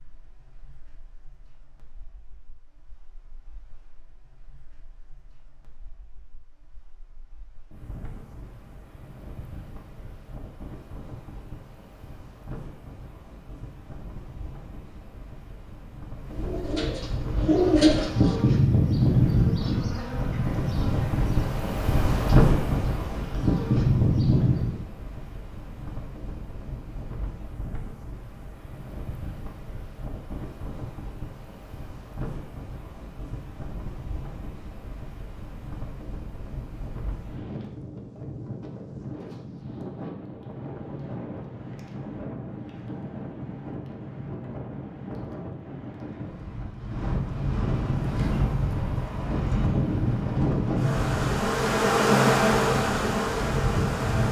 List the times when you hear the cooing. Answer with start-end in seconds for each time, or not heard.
16.4-18.4.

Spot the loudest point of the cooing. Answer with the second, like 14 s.
18 s.